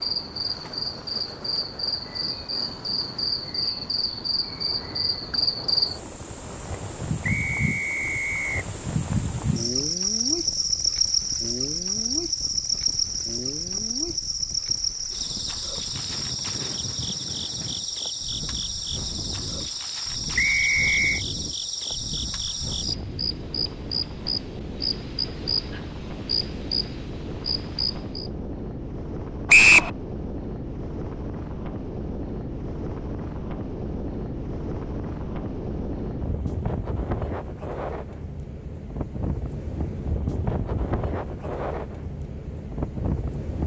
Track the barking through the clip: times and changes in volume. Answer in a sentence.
The barking can't be heard in this clip.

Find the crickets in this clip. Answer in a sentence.
The crickets can be heard from 0.0 to 28.3 s.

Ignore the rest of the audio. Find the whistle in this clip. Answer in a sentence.
You can hear the whistle from 7.2 to 8.7 s, from 20.4 to 21.2 s and from 29.4 to 29.9 s.